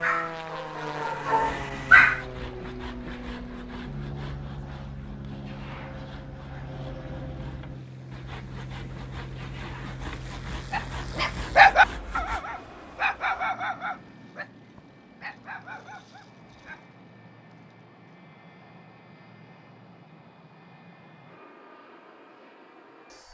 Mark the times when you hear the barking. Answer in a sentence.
You can hear the barking from 0.0 to 2.2 s and from 10.7 to 16.8 s.